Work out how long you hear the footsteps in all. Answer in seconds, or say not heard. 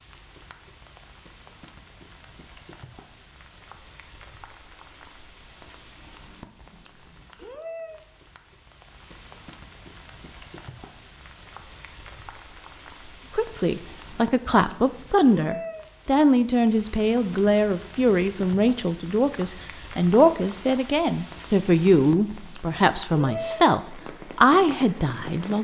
not heard.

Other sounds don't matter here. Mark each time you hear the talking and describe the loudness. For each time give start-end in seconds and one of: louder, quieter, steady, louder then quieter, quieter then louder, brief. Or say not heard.
13.3-25.5 steady.